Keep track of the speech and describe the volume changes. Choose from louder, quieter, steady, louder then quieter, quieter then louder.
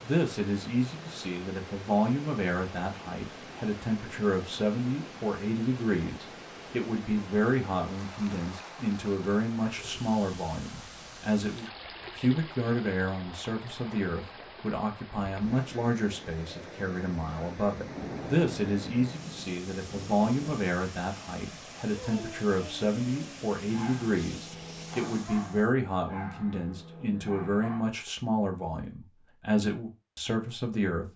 steady.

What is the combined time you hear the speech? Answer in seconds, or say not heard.
31 s.